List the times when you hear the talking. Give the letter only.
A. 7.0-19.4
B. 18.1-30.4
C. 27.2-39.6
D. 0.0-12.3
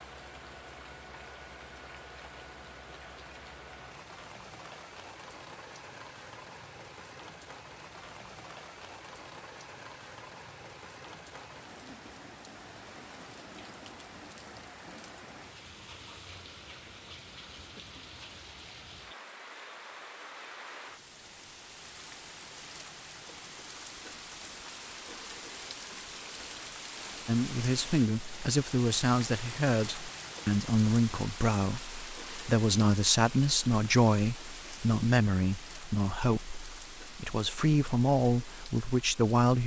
C.